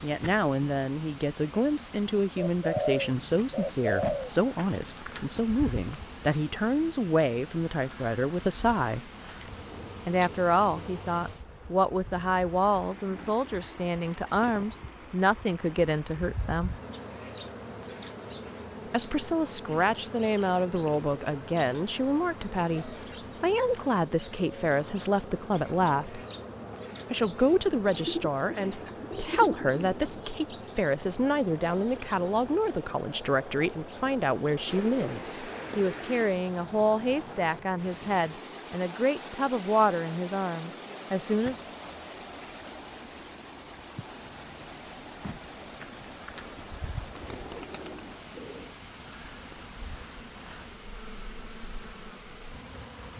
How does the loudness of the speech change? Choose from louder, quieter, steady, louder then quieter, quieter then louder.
steady.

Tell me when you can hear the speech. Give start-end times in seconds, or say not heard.
0.0-9.0, 10.1-16.8, 18.9-26.2, 27.1-41.5.